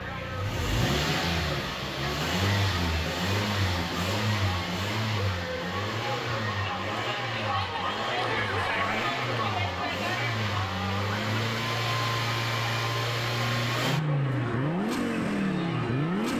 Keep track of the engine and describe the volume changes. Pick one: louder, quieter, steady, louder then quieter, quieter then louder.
quieter then louder.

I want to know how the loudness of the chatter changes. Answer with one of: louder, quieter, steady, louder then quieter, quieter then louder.
louder then quieter.